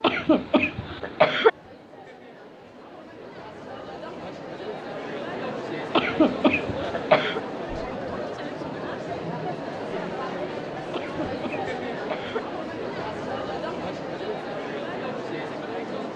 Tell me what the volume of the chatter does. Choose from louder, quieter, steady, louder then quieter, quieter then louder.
louder.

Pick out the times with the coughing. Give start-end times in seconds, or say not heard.
0.0-1.5, 5.9-7.4, 10.9-12.4.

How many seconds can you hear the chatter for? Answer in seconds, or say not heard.
16 s.